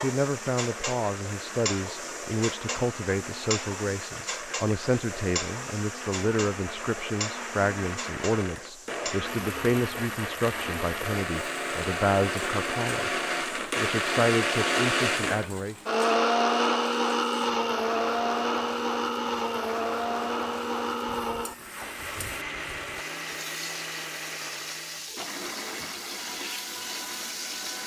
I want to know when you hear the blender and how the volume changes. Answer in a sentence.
The blender can be heard from 0.0 to 27.8 s, getting louder then quieter.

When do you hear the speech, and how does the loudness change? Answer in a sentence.
The speech can be heard from 0.0 to 15.8 s, at a steady volume.